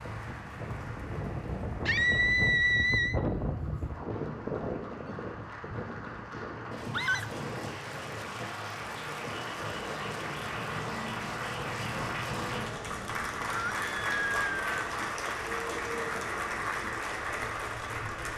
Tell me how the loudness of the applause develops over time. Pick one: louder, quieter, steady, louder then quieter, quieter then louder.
louder.